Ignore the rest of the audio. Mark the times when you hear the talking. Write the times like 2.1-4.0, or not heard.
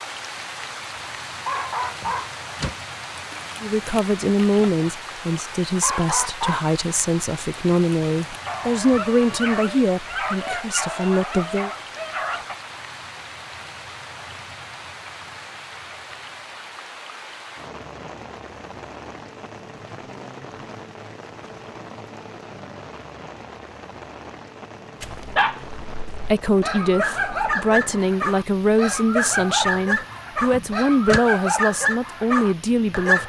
3.6-11.7, 26.1-33.2.